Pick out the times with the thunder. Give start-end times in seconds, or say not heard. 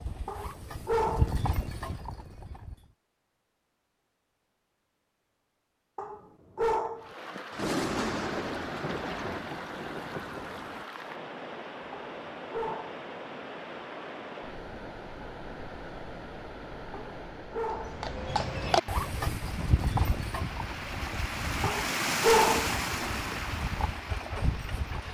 7.5-10.8.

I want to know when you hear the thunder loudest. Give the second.
8 s.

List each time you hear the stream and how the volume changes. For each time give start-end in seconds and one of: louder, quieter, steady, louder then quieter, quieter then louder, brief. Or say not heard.
7.0-25.0 louder.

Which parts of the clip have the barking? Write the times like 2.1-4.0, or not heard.
0.2-1.4, 6.0-7.1, 11.9-12.9, 16.9-18.1, 21.6-22.8.